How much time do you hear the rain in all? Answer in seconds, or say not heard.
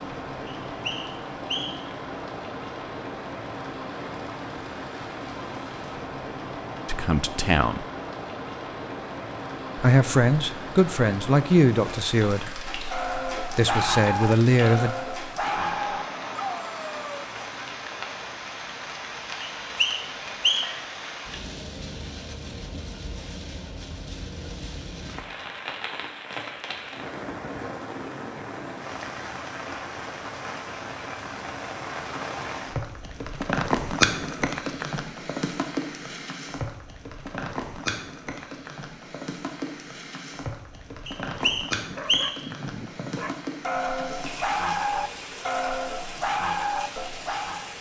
48 s.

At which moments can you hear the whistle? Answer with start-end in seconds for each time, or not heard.
0.5-1.9, 19.4-20.7, 41.0-42.5.